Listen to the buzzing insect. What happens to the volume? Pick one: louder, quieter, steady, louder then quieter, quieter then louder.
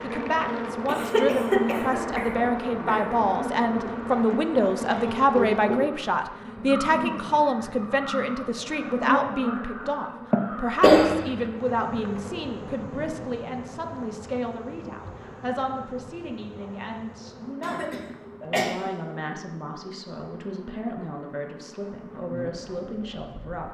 quieter.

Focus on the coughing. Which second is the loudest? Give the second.
11 s.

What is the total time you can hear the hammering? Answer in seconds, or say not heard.
not heard.